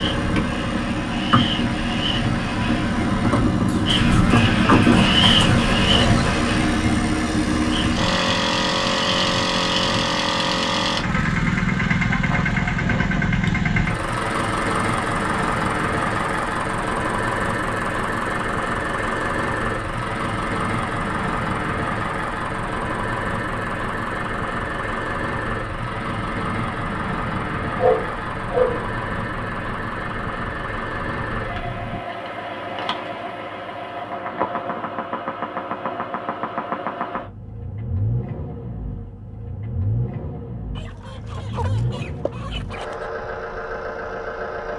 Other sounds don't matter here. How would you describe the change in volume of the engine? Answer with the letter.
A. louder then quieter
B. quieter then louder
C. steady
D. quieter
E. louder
D.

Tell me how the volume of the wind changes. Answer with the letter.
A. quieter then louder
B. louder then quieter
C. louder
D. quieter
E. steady
D.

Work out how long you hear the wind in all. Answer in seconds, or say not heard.
32 s.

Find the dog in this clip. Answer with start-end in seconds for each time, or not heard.
27.8-28.9.